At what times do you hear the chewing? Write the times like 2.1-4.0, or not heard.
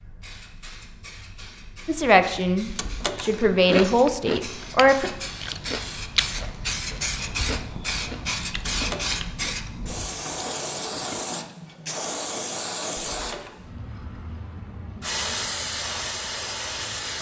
3.5-11.2.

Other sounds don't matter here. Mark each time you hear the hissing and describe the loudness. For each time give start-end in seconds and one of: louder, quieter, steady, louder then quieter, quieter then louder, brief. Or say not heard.
0.0-17.1 louder.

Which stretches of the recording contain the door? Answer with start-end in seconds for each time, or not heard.
2.6-3.3, 8.6-9.2, 13.1-13.6.